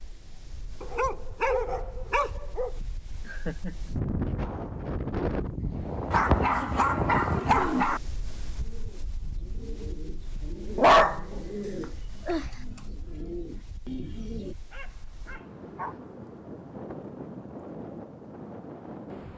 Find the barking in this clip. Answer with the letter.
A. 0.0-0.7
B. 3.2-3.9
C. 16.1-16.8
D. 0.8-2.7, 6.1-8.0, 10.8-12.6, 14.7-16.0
D.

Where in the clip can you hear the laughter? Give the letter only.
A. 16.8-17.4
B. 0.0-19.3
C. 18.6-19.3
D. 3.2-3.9
D.